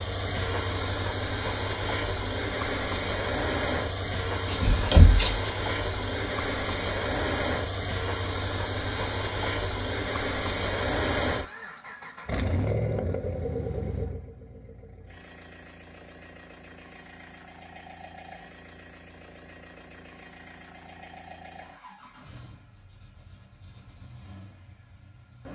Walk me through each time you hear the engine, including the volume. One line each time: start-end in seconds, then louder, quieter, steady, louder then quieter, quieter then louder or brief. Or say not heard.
0.0-25.5 quieter.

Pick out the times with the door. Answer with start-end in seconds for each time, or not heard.
4.5-5.5.